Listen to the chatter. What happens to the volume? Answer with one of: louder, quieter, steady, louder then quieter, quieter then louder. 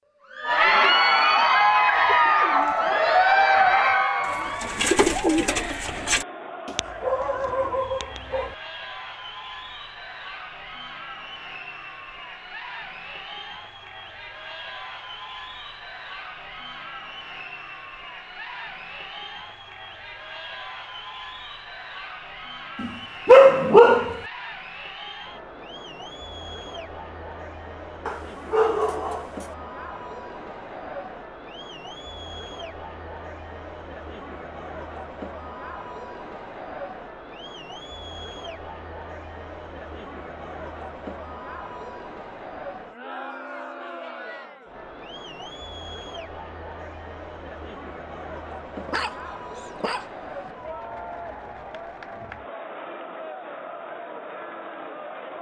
quieter.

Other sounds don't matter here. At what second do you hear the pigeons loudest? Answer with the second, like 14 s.
5 s.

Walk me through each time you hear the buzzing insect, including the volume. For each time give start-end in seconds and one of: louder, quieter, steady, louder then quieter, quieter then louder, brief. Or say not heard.
not heard.